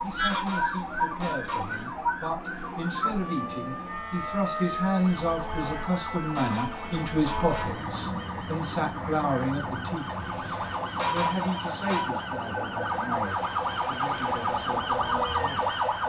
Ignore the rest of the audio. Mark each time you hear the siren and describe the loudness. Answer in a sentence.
You can hear the siren from 0.0 to 16.0 s, getting quieter then louder.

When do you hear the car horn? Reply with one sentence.
You can hear the car horn from 0.3 to 1.9 s, from 6.3 to 8.0 s and from 10.9 to 12.1 s.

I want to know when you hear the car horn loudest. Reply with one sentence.
The volume of the car horn peaks at 11 seconds.